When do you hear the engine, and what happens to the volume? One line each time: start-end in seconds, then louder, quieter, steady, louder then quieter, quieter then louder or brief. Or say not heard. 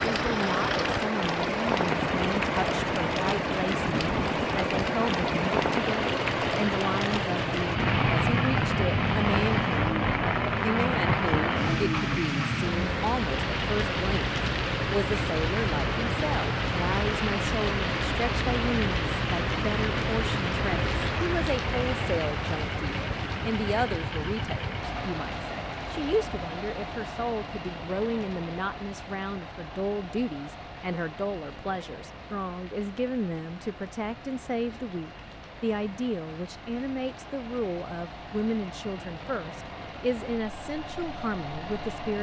0.0-42.1 quieter.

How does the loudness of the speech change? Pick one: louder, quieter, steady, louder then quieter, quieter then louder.
steady.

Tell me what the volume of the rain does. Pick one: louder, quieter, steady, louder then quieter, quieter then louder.
quieter.